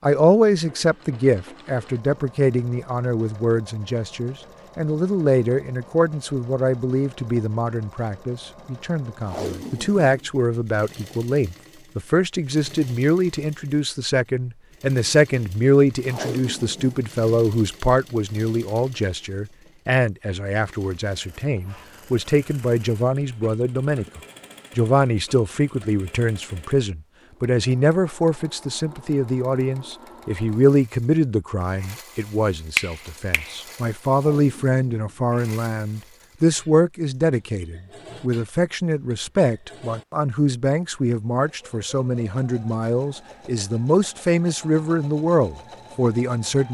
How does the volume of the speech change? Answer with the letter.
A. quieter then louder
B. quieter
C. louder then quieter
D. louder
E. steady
E.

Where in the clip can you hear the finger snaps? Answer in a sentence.
The finger snaps can be heard from 32.8 to 33.5 s.